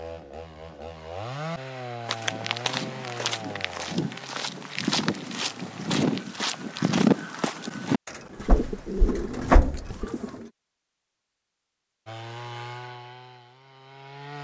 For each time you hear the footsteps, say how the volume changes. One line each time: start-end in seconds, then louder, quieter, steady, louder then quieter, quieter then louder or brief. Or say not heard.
2.0-10.1 louder then quieter.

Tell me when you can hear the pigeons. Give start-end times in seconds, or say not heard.
8.1-10.5.